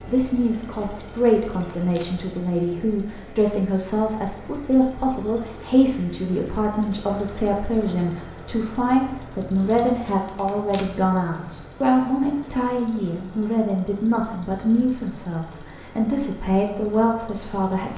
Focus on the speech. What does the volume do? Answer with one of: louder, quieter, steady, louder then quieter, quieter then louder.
steady.